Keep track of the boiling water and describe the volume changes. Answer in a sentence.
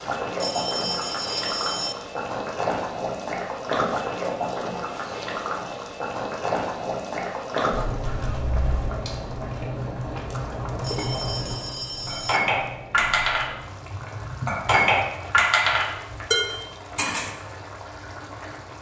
The loudness of the boiling water goes down.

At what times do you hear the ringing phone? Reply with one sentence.
The ringing phone can be heard from 0.3 to 1.9 s and from 10.8 to 12.4 s.